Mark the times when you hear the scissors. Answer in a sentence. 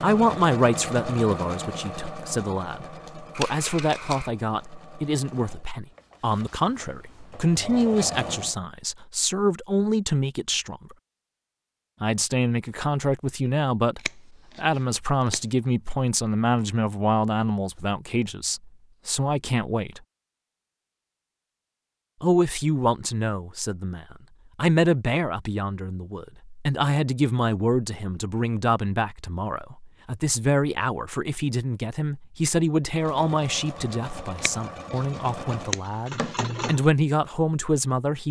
You can hear the scissors from 3.4 to 4.3 s, from 13.9 to 15.4 s and from 34.4 to 36.4 s.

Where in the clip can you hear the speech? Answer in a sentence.
The speech can be heard from 0.0 to 10.9 s, from 12.0 to 20.0 s and from 22.2 to 38.2 s.